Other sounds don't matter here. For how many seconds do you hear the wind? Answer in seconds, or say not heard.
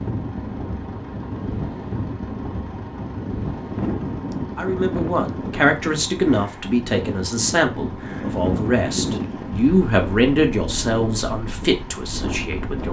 13 s.